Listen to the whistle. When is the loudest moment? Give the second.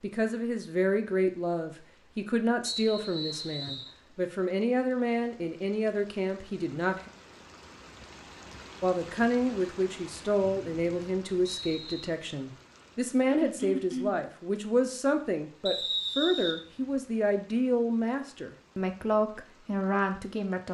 16 s.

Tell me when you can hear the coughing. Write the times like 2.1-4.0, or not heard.
13.2-14.2.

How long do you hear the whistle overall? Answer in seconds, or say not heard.
4 s.